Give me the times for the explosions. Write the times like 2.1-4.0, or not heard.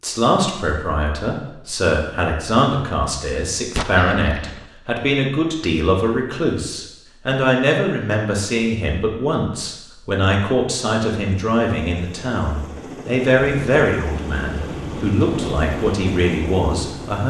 3.8-4.7.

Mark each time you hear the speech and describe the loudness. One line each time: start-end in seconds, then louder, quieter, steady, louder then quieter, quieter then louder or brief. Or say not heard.
0.0-17.2 steady.